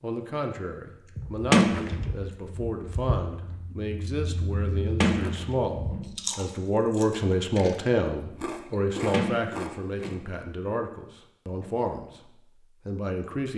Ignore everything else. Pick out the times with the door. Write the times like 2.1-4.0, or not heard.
1.5-2.0, 5.0-6.2, 9.1-10.3.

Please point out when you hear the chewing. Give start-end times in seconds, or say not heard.
1.0-10.2.